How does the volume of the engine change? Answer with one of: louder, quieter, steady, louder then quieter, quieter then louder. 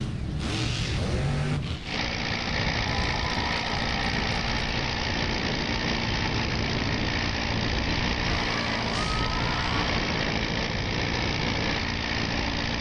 steady.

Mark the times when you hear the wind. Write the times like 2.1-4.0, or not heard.
0.1-12.7.